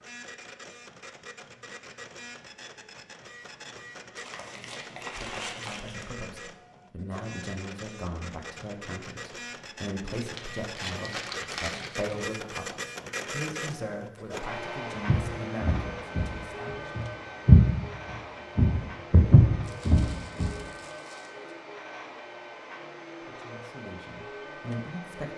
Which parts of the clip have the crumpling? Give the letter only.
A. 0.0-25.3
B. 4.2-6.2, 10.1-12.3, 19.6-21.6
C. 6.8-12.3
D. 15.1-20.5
B.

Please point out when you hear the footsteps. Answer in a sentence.
The footsteps can be heard from 15.1 to 20.5 s.